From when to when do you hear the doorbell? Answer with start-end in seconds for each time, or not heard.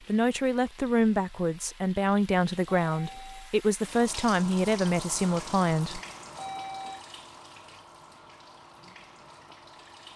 2.6-3.5, 6.3-7.0.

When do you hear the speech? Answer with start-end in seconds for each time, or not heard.
0.1-6.0.